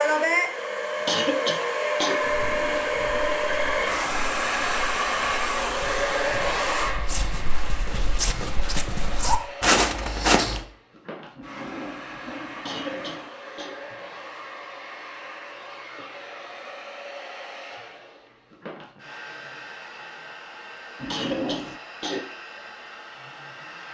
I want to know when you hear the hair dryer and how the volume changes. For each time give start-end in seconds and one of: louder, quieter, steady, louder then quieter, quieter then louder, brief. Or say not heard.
0.0-23.9 quieter.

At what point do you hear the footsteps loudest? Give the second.
10 s.